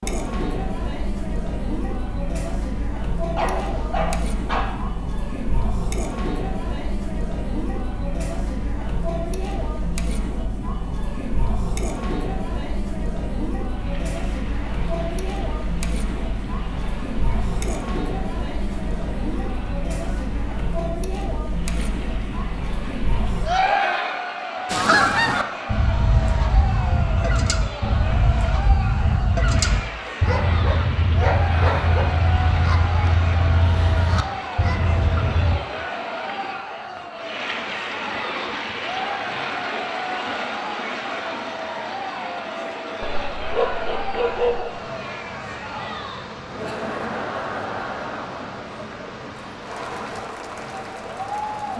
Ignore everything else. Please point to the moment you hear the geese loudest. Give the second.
25 s.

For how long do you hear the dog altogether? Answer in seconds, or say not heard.
5 s.